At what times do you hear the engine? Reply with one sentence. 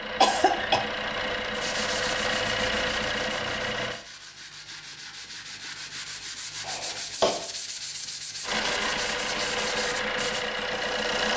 The engine can be heard from 0.0 to 4.0 s and from 8.4 to 11.3 s.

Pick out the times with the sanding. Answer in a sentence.
You can hear the sanding from 1.5 to 10.4 s.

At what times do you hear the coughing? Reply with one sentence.
The coughing can be heard from 0.2 to 0.8 s and from 6.6 to 7.3 s.